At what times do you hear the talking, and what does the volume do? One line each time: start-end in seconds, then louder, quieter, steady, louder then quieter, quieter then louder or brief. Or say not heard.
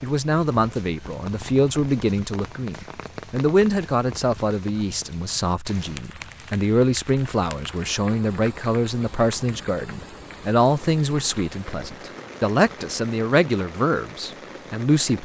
0.0-15.2 steady.